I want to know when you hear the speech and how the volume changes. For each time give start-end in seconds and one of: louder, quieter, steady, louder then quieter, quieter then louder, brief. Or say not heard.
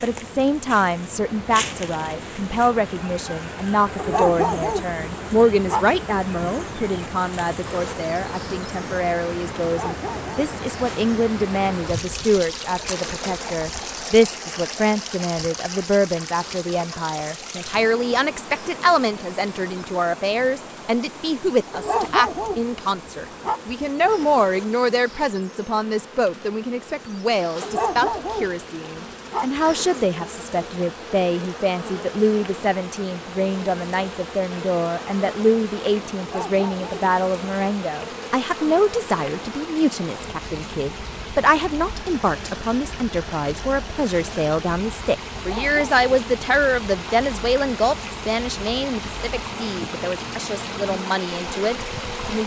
0.0-52.4 steady.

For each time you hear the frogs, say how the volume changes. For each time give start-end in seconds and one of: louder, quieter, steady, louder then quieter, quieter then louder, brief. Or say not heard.
not heard.